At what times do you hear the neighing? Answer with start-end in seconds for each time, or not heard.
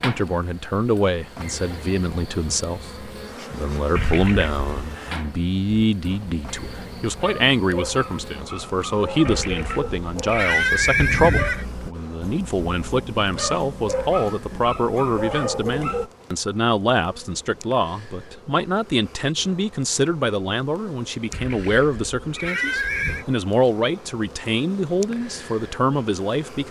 4.0-4.7, 9.2-11.7, 21.3-23.2.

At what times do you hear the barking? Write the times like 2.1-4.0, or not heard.
5.7-16.1.